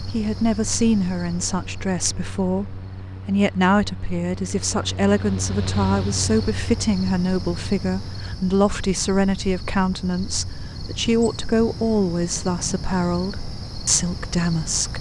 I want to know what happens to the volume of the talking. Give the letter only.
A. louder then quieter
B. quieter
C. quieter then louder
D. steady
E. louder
D.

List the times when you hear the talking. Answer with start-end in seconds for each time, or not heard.
0.1-14.9.